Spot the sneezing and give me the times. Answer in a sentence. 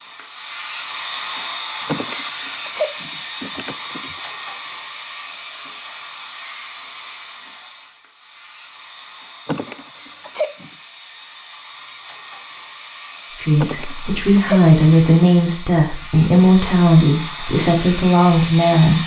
The sneezing can be heard from 1.9 to 4.2 s, from 9.4 to 10.7 s and from 13.6 to 14.8 s.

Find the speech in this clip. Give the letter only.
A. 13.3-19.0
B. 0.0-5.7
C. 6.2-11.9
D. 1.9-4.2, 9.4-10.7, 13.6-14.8
A.